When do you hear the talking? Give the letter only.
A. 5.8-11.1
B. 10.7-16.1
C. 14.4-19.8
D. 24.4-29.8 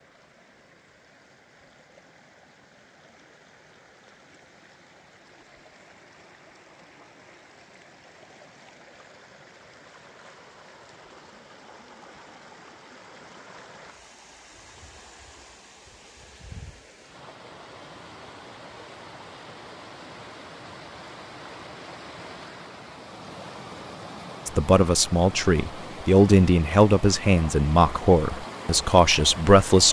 D.